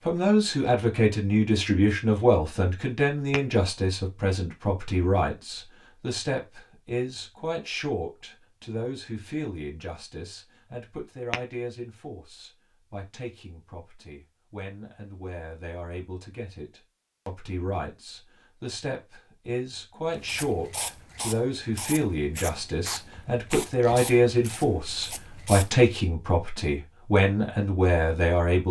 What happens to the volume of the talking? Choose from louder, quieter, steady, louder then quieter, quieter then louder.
quieter then louder.